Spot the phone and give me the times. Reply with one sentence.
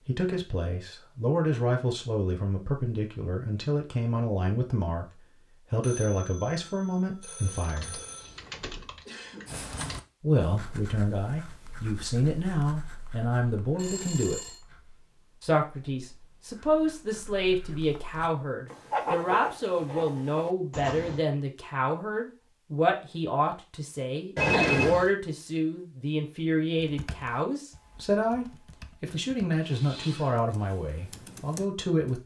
You can hear the phone from 5.8 to 8.3 s, from 13.8 to 14.6 s and from 24.4 to 25.1 s.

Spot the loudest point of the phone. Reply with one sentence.
The volume of the phone peaks at 25 seconds.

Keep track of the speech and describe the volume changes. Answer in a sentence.
The volume of the speech stays about the same.